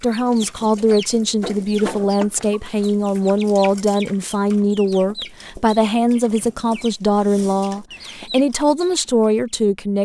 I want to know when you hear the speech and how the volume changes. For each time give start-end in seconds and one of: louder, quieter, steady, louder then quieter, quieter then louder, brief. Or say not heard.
0.0-10.0 steady.